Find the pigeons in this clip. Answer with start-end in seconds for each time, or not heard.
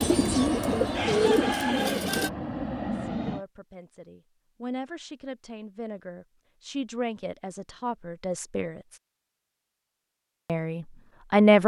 0.0-2.3.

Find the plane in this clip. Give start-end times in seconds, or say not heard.
0.0-3.5.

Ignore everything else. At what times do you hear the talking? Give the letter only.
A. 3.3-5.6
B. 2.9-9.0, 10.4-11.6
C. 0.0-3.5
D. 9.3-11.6
B.